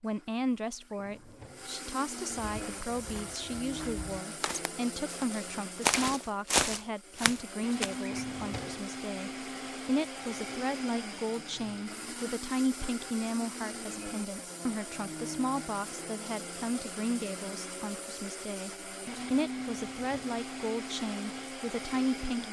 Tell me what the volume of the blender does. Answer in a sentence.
The volume of the blender stays about the same.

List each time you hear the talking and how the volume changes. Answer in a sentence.
The talking can be heard from 0.0 to 22.4 s, at a steady volume.